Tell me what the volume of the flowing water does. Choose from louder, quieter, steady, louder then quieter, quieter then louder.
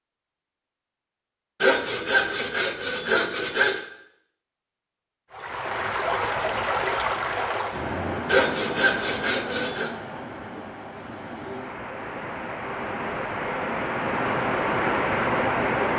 quieter then louder.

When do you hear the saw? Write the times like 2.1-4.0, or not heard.
1.6-3.9, 8.2-9.9.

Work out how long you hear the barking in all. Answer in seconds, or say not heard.
not heard.